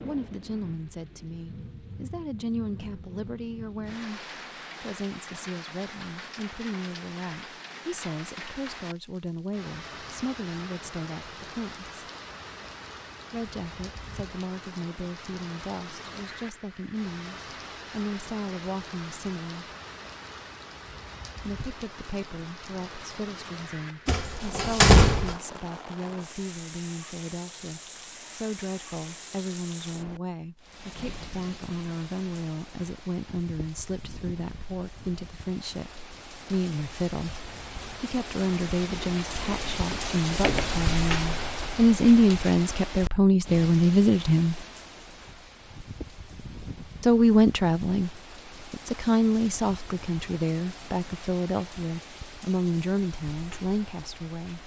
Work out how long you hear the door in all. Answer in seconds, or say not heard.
3 s.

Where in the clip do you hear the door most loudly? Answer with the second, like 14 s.
25 s.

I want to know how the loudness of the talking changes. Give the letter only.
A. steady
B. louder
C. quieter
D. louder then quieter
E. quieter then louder
B.